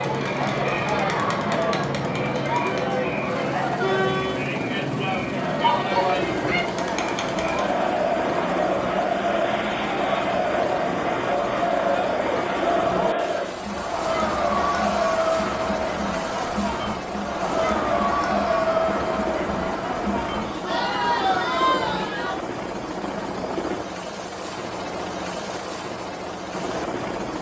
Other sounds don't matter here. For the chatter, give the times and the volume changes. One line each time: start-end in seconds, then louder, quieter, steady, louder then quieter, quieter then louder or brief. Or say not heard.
0.0-22.4 steady.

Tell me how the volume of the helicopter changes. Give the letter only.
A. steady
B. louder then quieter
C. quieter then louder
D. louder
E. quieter
A.